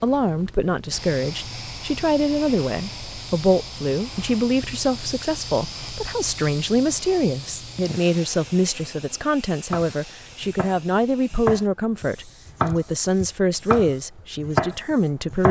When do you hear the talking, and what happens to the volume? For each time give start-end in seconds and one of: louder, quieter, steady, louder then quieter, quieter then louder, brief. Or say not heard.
0.0-15.4 steady.